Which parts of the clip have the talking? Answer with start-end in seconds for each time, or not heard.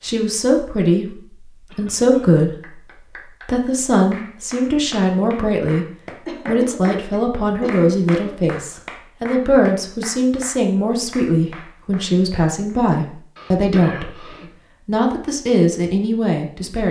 0.0-2.8, 3.5-5.8, 6.5-14.2, 14.8-16.8.